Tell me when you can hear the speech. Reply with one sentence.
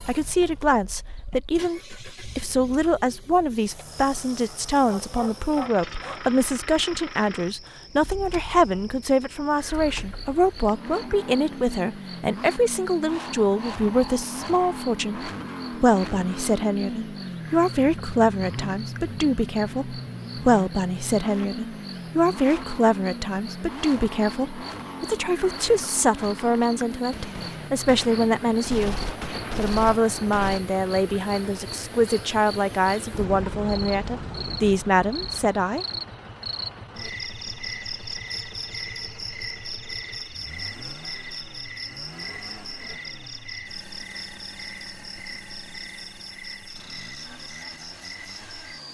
The speech can be heard from 0.1 to 35.9 s.